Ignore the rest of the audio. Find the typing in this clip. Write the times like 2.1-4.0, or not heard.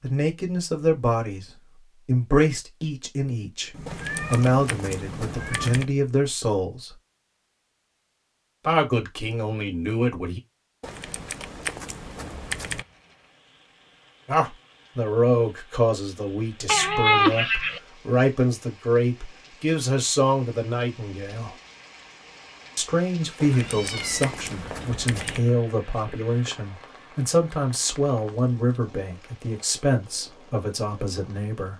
3.9-5.8, 10.8-12.8, 23.4-25.4.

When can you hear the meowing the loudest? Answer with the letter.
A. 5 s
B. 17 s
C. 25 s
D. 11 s
B.